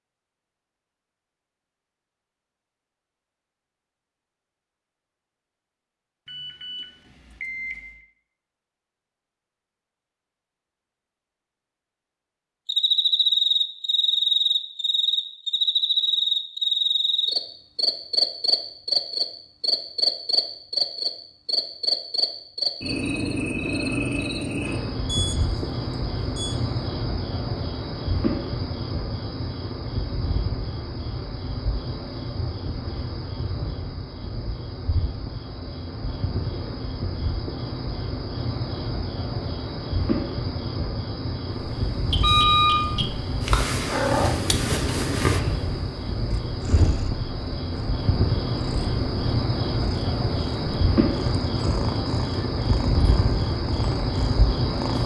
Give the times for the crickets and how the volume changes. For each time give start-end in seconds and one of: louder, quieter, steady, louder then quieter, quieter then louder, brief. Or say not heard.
12.7-55.0 quieter then louder.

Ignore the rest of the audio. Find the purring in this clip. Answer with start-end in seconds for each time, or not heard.
41.5-55.0.